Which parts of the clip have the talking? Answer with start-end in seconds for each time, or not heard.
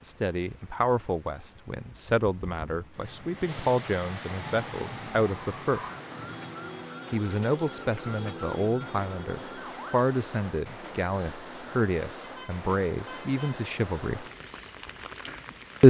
0.0-5.8, 7.1-14.2.